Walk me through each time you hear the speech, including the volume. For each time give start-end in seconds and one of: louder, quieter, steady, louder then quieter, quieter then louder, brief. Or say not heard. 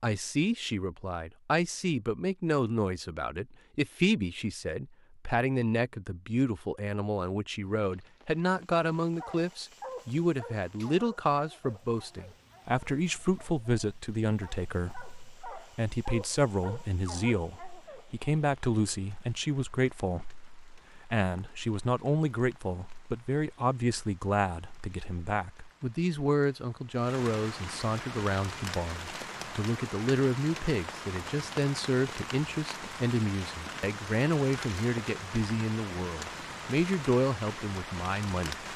0.0-38.6 steady.